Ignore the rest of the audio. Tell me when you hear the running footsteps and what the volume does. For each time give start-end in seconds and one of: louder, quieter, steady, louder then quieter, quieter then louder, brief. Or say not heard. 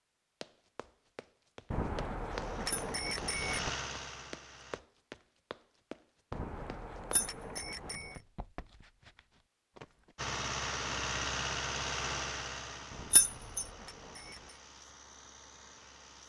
0.4-10.2 quieter.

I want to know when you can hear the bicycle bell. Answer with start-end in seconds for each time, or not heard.
1.7-3.7, 6.3-8.2, 12.9-14.6.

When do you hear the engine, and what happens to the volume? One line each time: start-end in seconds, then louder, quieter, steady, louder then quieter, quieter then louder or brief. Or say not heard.
2.3-4.8 brief
10.2-16.2 quieter.